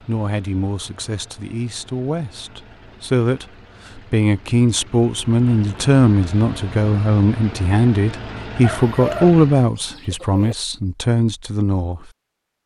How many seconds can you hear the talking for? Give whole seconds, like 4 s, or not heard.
12 s.